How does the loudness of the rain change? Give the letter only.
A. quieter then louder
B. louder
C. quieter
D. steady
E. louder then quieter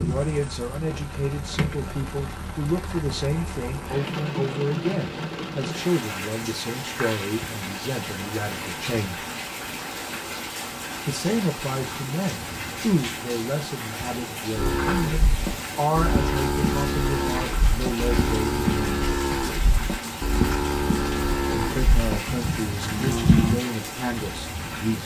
D.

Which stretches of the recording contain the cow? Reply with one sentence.
You can hear the cow from 14.6 to 23.6 s.